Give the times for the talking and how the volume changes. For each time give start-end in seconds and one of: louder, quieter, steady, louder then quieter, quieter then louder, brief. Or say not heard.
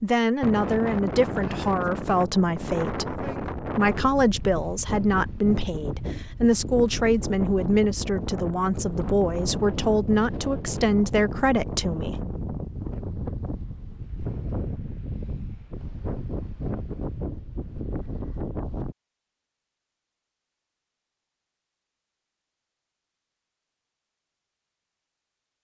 0.0-12.2 steady.